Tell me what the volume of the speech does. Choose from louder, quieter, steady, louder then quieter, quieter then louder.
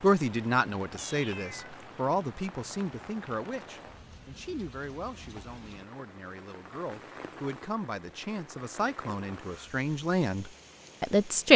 quieter then louder.